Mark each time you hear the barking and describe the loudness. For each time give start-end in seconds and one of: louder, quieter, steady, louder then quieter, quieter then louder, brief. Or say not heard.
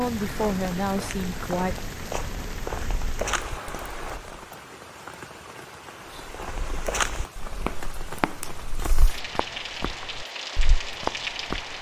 not heard.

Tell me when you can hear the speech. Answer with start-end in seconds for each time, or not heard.
0.0-1.8.